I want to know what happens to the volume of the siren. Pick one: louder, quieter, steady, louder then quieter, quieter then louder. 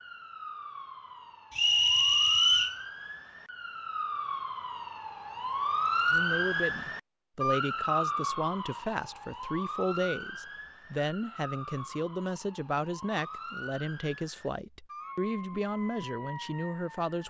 louder then quieter.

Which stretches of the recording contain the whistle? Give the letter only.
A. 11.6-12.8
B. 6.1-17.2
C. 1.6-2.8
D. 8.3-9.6
C.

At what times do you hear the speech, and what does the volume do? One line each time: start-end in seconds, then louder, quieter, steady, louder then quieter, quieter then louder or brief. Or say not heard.
6.1-17.2 steady.